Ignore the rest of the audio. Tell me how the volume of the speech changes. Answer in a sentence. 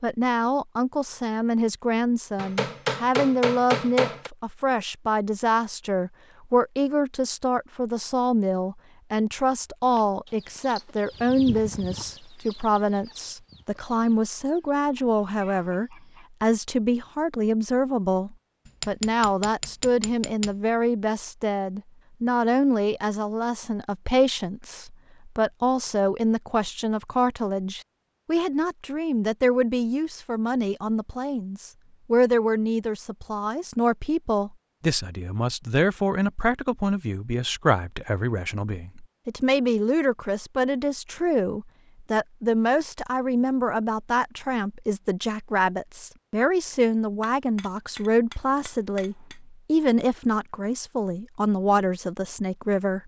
The loudness of the speech stays about the same.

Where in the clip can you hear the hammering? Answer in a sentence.
The hammering can be heard from 2.4 to 4.3 s, from 18.6 to 20.6 s and from 47.2 to 49.4 s.